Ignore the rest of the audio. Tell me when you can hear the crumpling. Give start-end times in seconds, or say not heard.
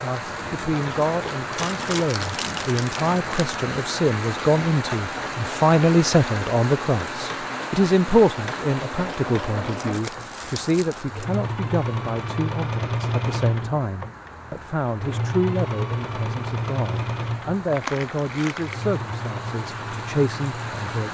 1.6-3.5, 9.8-11.3, 17.7-18.9.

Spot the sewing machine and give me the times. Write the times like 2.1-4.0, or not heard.
0.0-21.1.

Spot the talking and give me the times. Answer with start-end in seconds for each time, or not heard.
0.0-21.1.